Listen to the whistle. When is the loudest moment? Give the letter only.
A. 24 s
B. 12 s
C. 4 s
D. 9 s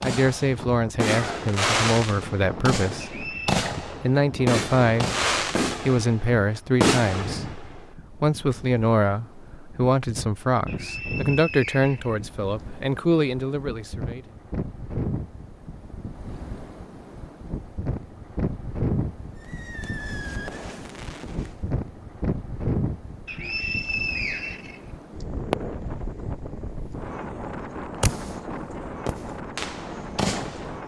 A.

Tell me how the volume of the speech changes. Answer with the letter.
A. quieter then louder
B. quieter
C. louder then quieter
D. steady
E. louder
D.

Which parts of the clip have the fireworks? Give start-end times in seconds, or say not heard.
0.0-7.8, 19.4-21.6, 25.5-26.0, 28.0-30.8.